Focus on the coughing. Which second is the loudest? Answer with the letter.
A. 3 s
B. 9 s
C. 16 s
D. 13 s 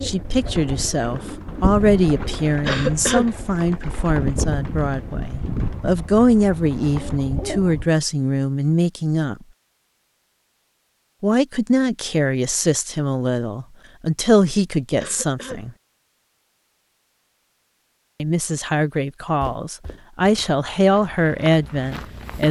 A.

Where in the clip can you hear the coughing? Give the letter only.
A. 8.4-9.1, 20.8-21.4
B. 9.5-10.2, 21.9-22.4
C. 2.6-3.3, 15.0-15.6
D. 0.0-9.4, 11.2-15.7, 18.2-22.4
C.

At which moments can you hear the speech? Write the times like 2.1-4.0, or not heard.
0.0-9.4, 11.2-15.7, 18.2-22.4.